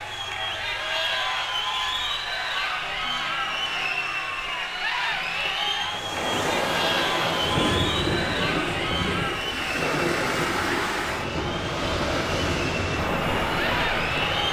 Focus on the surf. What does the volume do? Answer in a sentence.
The loudness of the surf stays about the same.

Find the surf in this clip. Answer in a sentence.
You can hear the surf from 5.8 to 14.4 s.